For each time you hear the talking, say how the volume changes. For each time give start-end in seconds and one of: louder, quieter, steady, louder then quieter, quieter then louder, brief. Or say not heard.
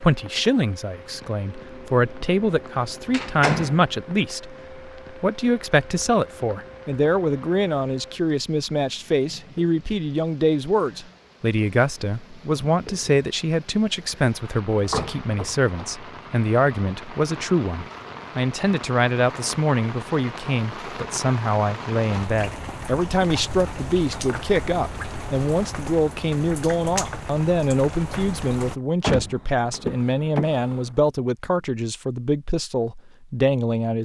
0.0-34.0 steady.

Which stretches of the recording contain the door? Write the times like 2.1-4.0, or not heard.
3.1-3.8, 14.8-15.9, 29.0-30.9.